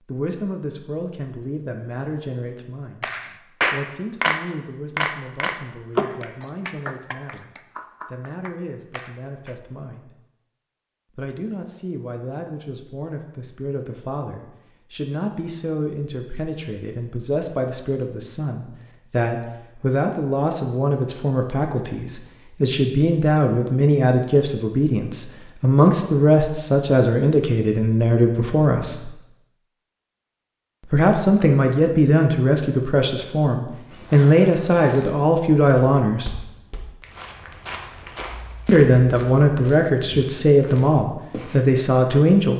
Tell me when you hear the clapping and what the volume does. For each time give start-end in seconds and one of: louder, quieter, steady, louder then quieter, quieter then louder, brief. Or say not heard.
3.0-9.6 quieter.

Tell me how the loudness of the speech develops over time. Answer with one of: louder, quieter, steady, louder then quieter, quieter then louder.
louder.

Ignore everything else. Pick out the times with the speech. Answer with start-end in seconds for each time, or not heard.
0.1-10.2, 11.2-29.1, 30.9-36.4, 38.6-42.5.